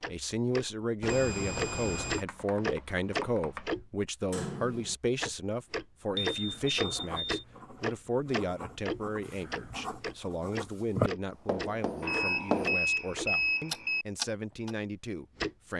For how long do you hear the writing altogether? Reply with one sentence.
The writing can be heard for 7 seconds in total.